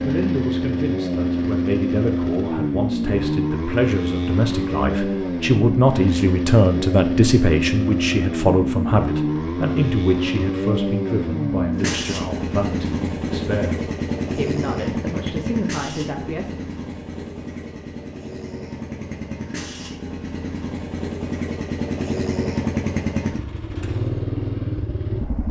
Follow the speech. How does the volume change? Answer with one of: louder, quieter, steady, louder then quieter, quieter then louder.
louder then quieter.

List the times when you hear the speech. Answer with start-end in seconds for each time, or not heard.
0.0-16.6.